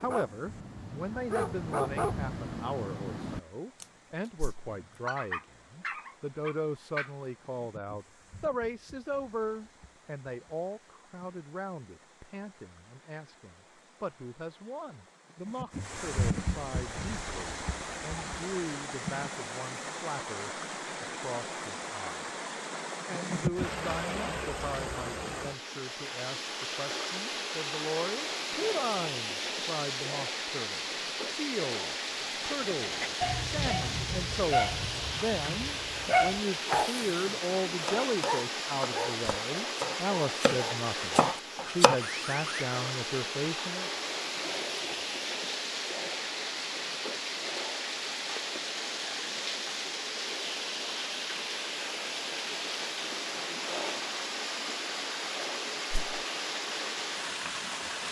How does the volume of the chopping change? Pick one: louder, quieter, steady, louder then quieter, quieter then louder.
louder.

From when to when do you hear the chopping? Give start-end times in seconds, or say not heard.
36.5-42.0.